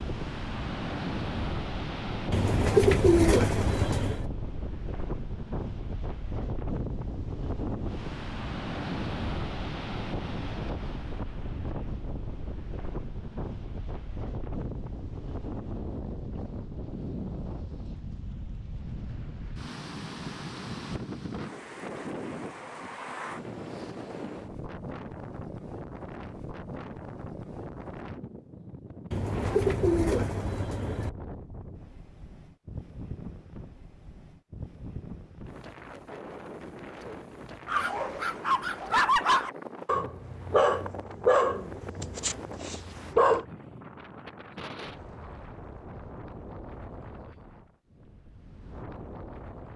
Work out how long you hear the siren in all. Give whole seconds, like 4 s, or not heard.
not heard.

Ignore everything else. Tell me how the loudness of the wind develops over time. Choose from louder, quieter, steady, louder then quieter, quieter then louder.
quieter.